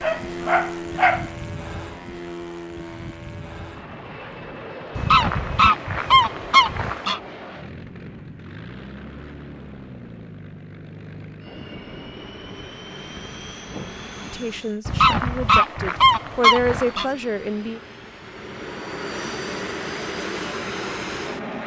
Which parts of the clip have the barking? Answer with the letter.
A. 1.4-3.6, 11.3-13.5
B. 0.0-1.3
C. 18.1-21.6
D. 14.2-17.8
B.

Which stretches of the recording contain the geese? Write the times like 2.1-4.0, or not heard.
5.0-7.2, 14.8-17.1.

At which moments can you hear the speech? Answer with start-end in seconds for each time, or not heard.
14.2-17.8.